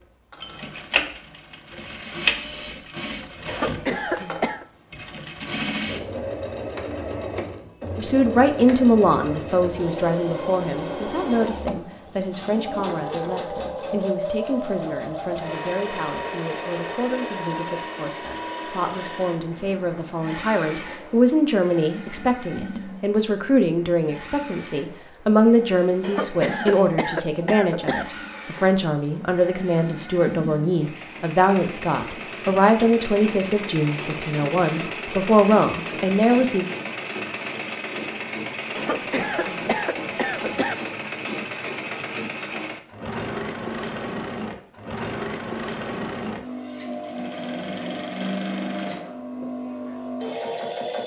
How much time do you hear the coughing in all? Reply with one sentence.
You can hear the coughing for 5 seconds altogether.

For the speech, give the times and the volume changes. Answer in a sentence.
The speech can be heard from 8.0 to 36.6 s, getting quieter then louder.